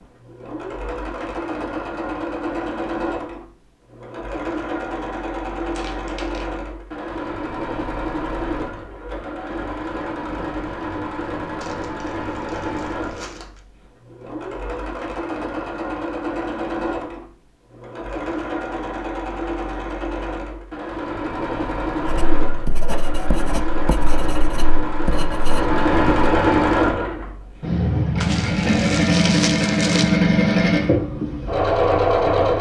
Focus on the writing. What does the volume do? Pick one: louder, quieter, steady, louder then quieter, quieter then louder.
steady.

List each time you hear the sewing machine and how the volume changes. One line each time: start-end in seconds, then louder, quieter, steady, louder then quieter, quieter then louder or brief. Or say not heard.
0.0-32.5 louder.